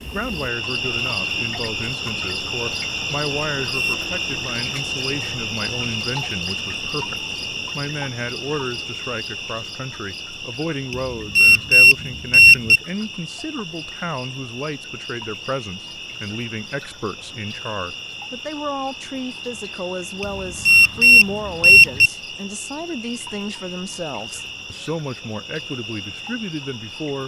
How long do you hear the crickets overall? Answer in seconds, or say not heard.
27 s.